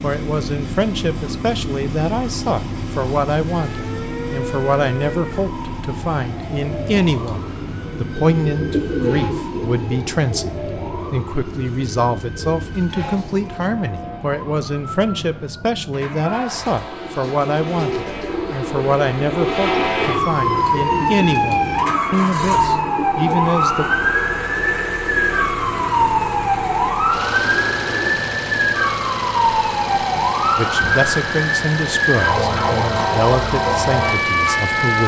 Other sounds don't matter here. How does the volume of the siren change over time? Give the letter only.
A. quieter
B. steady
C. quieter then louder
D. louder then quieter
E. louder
E.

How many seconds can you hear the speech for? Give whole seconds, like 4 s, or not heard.
28 s.